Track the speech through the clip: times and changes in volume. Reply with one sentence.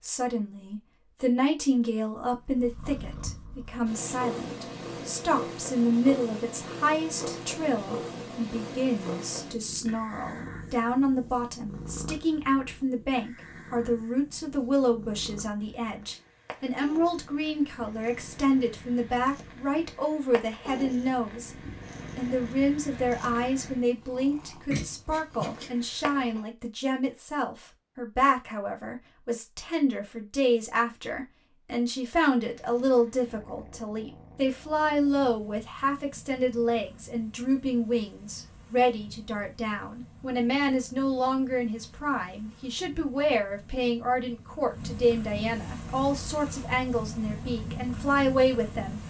You can hear the speech from 0.0 to 49.0 s, at a steady volume.